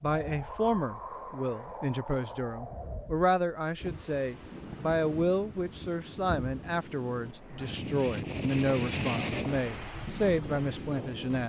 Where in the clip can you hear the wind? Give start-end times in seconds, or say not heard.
0.0-11.4.